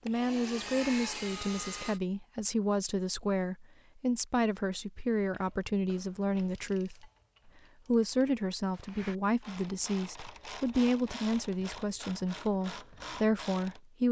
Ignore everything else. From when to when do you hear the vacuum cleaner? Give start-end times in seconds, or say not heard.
0.1-2.0.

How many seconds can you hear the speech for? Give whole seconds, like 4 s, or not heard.
13 s.